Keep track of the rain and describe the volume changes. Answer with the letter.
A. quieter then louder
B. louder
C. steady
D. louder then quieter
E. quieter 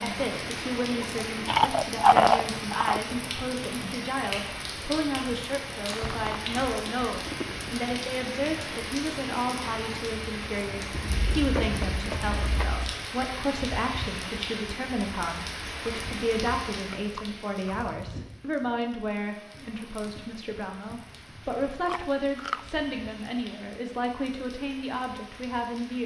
E.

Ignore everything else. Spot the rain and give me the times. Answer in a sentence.
You can hear the rain from 0.0 to 26.0 s.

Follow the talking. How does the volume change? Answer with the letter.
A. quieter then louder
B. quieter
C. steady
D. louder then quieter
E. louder
C.